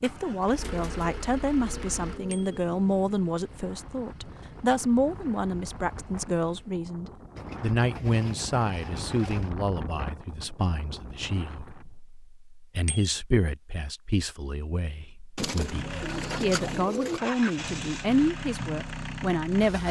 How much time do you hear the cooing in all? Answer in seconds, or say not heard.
6 s.